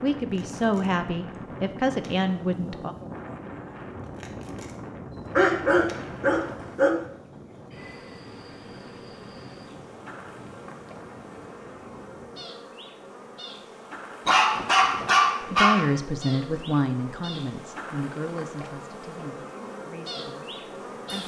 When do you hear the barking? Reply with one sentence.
The barking can be heard from 5.1 to 7.0 s and from 14.2 to 15.8 s.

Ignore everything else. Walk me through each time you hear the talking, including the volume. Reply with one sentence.
The talking can be heard briefly from 0.0 to 3.0 s; and from 15.4 to 21.2 s, getting quieter.